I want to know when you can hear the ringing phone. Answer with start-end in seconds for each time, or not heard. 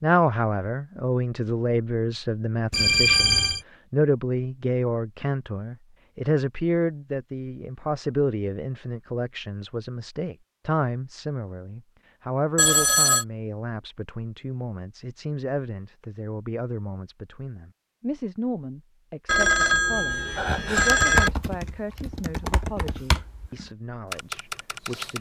2.7-3.6, 12.6-13.2, 19.2-21.3.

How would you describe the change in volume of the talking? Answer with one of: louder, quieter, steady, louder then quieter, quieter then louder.
quieter.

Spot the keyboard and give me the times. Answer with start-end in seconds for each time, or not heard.
20.6-25.1.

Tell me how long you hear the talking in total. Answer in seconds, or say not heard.
25 s.